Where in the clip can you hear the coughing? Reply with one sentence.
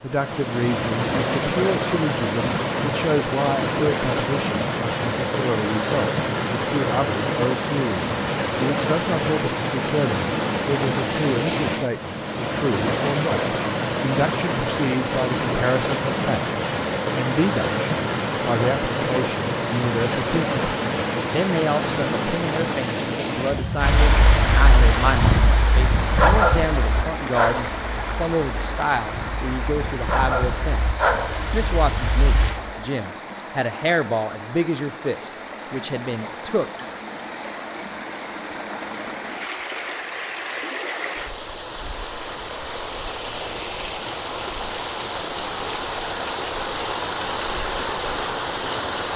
The coughing can't be heard in this clip.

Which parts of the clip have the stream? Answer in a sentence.
You can hear the stream from 0.0 to 49.1 s.